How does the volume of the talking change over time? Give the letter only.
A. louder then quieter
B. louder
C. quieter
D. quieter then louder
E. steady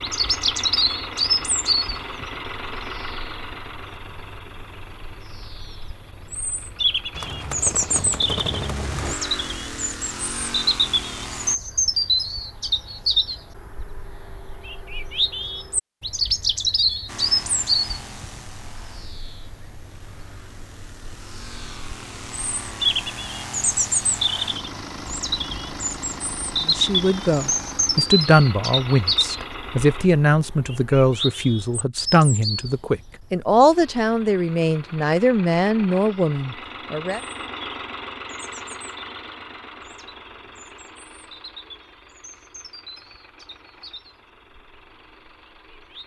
E.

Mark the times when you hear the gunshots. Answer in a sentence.
You can hear the gunshots from 7.1 to 9.2 s.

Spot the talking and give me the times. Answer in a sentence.
The talking can be heard from 26.6 to 37.2 s.